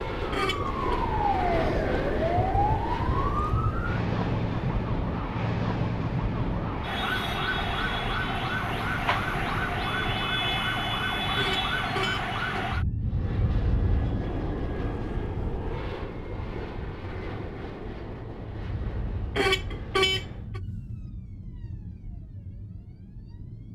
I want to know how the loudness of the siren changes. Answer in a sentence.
The loudness of the siren goes down.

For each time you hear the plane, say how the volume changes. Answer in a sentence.
The plane can be heard from 0.0 to 10.2 s, getting quieter; and from 13.0 to 20.6 s, getting quieter.